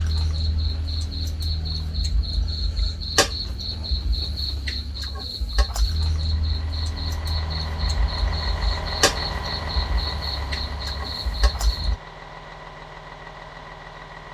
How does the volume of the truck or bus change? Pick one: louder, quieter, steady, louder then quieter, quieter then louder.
louder then quieter.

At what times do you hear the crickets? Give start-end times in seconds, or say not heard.
0.0-12.0.